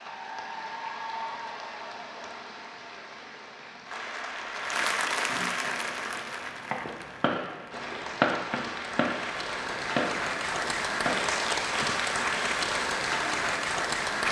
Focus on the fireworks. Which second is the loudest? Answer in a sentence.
The loudest moment of the fireworks is at 8 seconds.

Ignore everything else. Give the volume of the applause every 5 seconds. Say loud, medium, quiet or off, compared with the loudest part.
medium, medium, loud.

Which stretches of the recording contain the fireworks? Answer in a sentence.
The fireworks can be heard from 5.7 to 11.4 s.